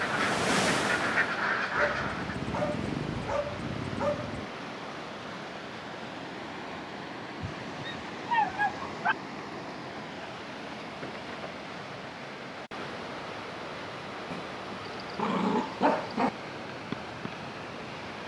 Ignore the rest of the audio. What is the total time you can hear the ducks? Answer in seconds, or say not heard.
2 s.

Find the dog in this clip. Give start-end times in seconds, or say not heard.
1.8-4.5, 7.4-9.2, 14.3-16.3.